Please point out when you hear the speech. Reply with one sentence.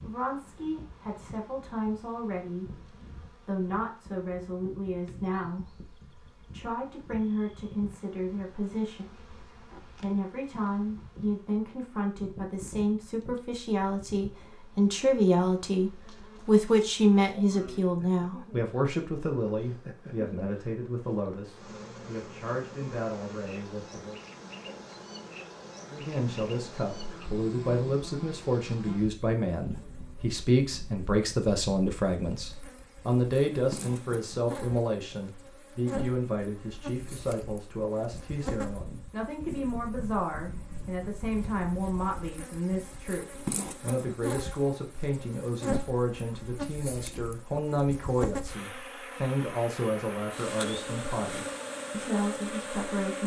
The speech can be heard from 0.0 to 24.2 s and from 25.9 to 53.2 s.